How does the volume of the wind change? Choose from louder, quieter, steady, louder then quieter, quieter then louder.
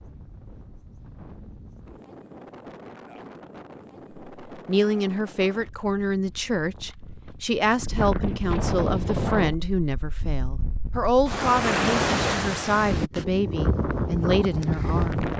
louder.